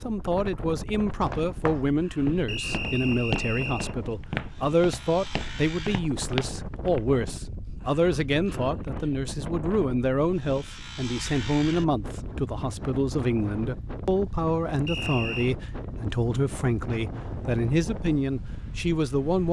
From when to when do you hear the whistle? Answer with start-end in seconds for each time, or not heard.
2.5-4.0, 14.8-15.6.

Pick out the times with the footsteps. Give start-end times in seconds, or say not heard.
1.2-7.0.